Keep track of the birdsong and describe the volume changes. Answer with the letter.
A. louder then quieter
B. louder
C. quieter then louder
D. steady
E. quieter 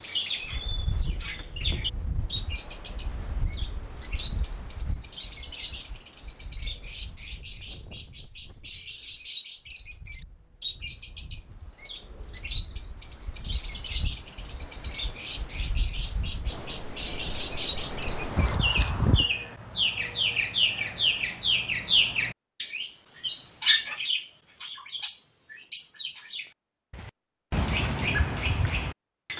B.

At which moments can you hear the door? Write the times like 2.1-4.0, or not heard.
18.4-19.3.